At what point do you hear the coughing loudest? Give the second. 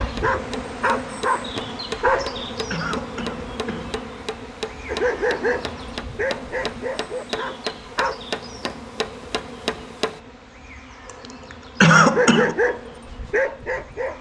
12 s.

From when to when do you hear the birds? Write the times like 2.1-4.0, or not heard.
not heard.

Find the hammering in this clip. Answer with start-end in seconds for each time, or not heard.
0.1-10.2.